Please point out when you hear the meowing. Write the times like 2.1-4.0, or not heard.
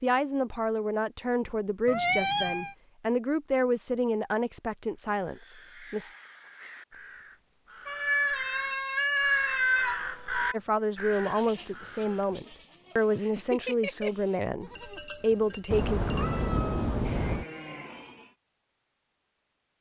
1.9-2.8, 7.8-10.6, 15.7-17.4.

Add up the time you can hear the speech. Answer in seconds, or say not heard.
12 s.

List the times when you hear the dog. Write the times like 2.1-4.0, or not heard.
not heard.